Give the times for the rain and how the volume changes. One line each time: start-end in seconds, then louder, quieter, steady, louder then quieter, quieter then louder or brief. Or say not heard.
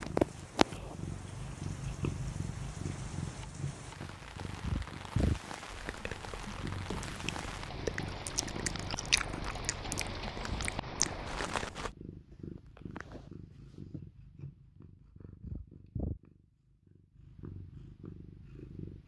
0.0-11.9 louder.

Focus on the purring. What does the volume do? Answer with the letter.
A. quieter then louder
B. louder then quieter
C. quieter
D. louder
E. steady
C.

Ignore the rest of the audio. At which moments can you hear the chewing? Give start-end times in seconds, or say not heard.
5.7-11.9.